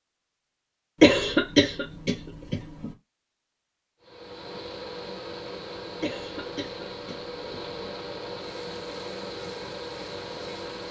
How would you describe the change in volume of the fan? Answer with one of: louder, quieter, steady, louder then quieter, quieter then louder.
steady.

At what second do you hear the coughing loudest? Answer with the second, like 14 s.
1 s.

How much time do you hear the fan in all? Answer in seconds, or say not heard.
7 s.